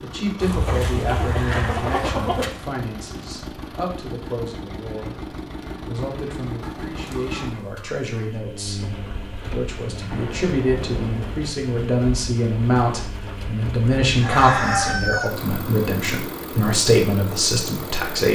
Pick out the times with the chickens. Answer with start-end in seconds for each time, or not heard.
0.4-2.5, 6.6-8.4, 14.2-15.3.